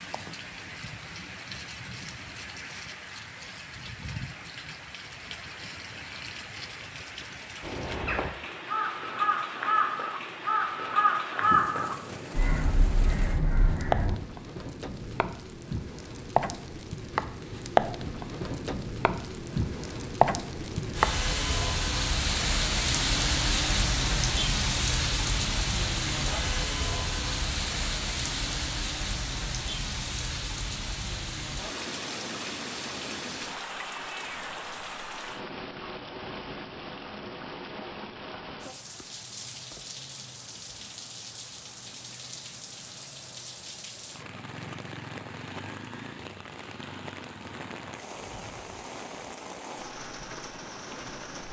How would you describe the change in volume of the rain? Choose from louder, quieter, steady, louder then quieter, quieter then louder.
louder then quieter.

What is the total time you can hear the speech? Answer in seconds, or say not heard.
not heard.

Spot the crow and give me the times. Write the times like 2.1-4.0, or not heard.
7.6-14.2.